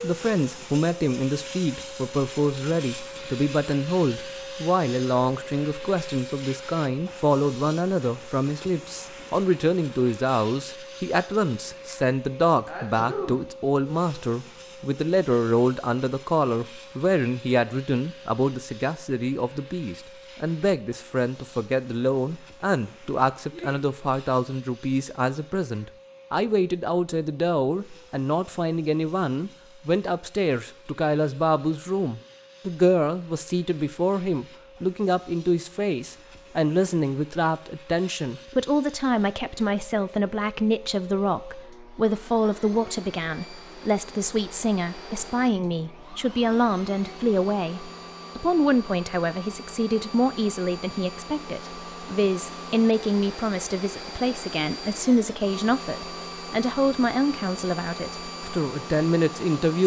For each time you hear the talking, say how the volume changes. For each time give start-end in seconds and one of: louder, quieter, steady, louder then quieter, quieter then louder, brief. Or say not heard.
0.0-59.8 steady.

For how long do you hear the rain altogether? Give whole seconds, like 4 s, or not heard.
not heard.